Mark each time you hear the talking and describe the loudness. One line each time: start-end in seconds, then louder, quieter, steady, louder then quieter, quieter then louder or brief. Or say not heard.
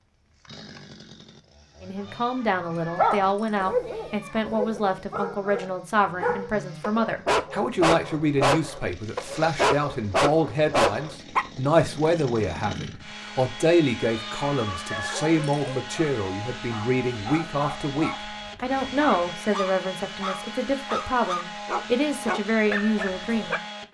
1.8-23.6 steady.